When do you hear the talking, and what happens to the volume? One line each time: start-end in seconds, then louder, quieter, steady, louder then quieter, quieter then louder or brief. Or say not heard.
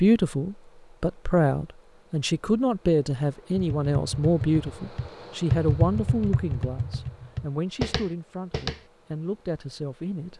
0.0-10.3 quieter.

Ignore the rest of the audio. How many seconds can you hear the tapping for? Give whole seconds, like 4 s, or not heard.
5 s.